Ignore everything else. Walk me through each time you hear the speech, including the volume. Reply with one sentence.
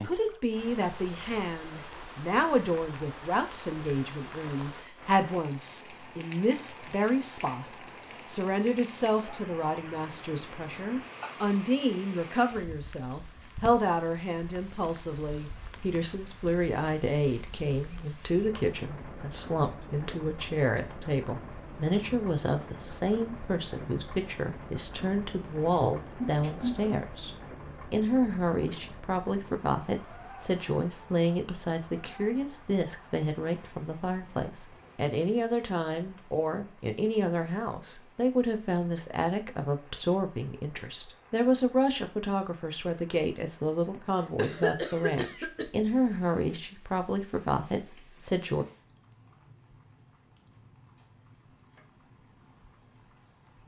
You can hear the speech from 0.1 to 48.6 s, at a steady volume.